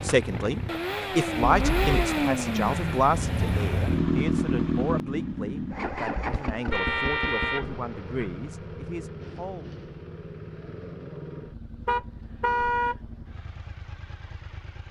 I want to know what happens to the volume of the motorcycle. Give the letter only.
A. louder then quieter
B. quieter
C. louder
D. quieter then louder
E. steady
B.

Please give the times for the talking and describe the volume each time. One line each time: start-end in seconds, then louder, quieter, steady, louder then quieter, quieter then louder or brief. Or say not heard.
0.0-9.7 quieter.